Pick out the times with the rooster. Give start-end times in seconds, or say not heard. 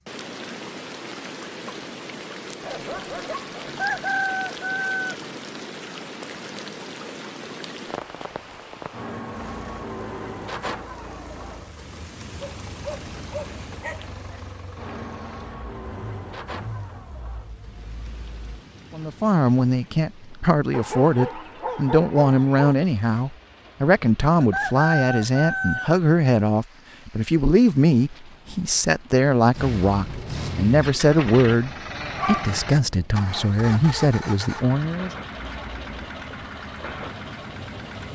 3.6-5.2, 24.4-25.9.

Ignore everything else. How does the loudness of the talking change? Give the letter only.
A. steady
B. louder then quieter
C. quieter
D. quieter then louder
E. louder
A.